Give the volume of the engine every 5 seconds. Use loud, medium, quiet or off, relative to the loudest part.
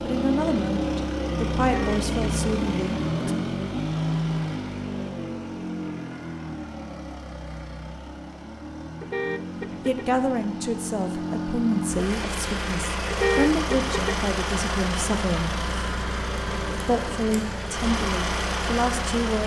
loud, medium, loud, loud.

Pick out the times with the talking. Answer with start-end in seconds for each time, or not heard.
0.0-3.3, 9.8-15.6, 16.9-19.4.